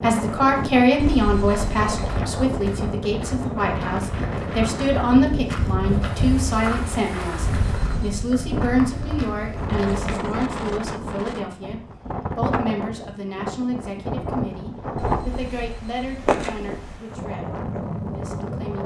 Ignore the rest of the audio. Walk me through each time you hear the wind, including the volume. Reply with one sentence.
You can hear the wind from 0.0 to 18.8 s, at a steady volume.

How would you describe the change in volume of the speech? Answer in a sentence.
The volume of the speech goes down.